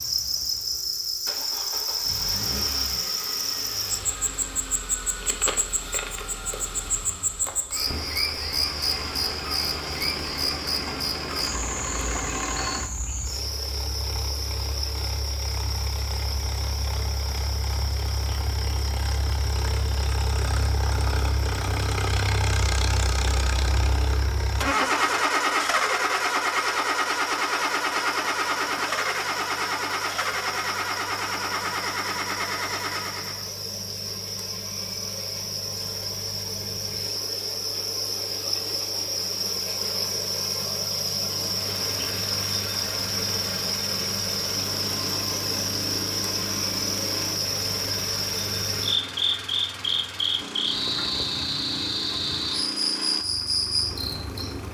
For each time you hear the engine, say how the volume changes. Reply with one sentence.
The engine can be heard from 0.0 to 33.5 s, getting louder; and from 41.2 to 54.6 s, at a steady volume.